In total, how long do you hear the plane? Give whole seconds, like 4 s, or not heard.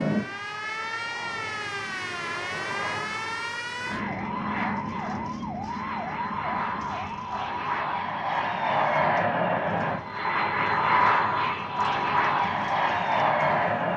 14 s.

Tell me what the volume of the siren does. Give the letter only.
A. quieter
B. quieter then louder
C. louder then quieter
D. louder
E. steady
A.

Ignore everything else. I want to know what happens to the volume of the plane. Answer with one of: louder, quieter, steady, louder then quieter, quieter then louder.
louder.